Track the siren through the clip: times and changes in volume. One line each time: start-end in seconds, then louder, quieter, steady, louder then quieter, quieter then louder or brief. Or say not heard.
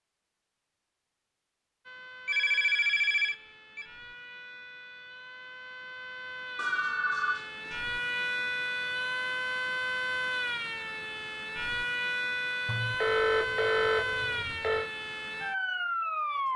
1.9-16.5 louder.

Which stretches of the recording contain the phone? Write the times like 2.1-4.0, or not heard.
2.2-3.9, 6.5-7.8, 12.7-14.9.